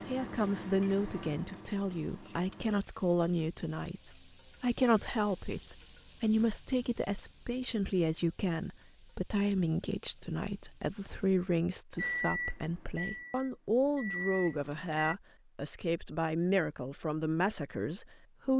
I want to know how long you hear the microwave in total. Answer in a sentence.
You can hear the microwave for 6 seconds altogether.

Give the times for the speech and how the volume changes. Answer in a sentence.
The speech can be heard from 0.1 to 18.5 s, at a steady volume.